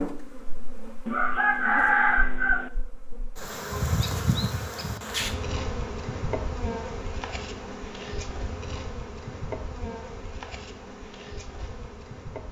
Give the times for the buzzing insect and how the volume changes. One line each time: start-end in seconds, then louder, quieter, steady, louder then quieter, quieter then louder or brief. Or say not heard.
0.0-12.4 louder then quieter.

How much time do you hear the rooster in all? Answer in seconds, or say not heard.
2 s.